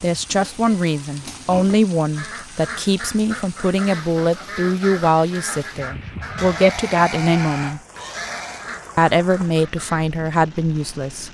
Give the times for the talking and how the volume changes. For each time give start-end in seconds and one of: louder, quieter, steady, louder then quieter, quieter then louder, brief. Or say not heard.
0.0-7.8 steady
8.9-11.2 brief.